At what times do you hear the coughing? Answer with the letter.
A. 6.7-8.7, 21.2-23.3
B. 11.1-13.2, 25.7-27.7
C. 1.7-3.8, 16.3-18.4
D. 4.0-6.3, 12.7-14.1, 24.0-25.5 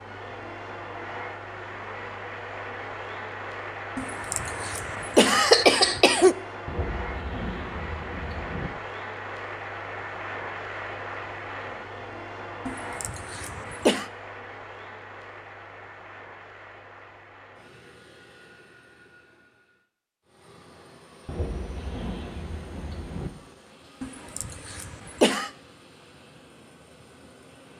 D.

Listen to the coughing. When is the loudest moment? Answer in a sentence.
The volume of the coughing peaks at 6 seconds.